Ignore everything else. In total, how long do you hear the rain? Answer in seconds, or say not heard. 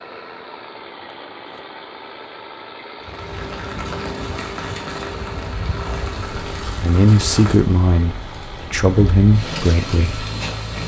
8 s.